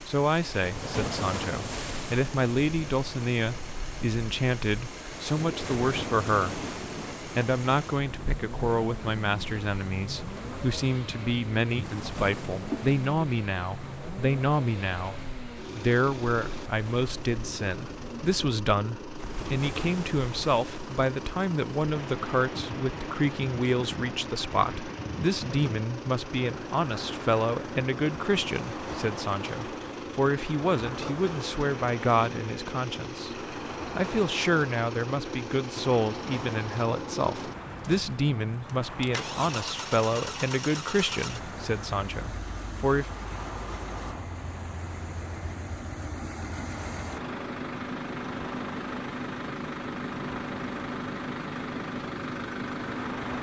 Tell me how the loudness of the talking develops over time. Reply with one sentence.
The volume of the talking stays about the same.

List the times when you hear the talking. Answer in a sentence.
You can hear the talking from 0.1 to 6.6 s and from 7.3 to 43.0 s.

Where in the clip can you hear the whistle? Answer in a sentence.
The whistle can't be heard in this clip.